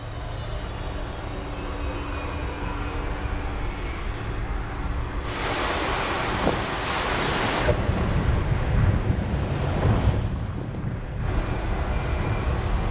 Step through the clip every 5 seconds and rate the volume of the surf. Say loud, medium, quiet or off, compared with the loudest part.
off, loud, medium.